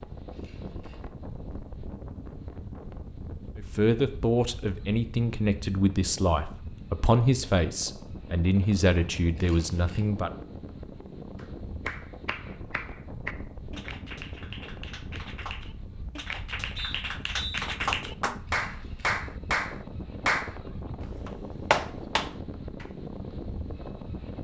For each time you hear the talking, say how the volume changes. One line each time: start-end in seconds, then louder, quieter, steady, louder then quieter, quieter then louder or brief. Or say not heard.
3.5-10.3 steady.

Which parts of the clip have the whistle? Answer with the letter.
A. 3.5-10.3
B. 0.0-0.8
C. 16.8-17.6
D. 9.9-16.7
C.